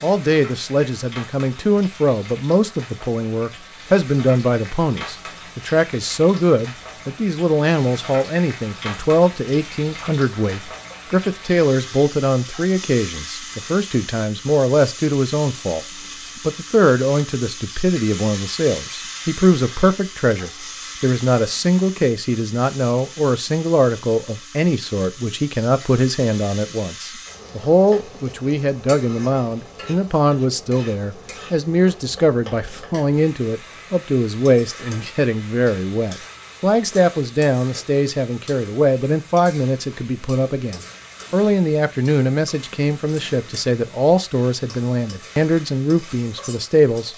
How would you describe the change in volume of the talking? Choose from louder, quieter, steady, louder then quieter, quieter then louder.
steady.